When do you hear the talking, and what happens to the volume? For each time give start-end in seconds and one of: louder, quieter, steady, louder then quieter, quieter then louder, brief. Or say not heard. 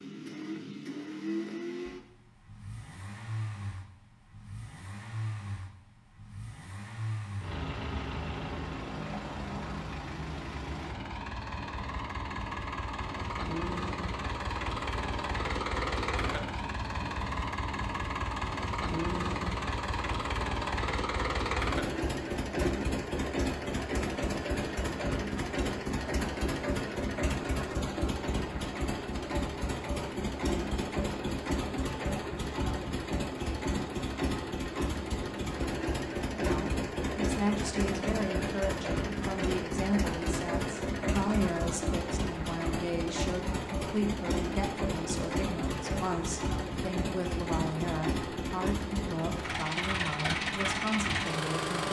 36.3-51.8 steady.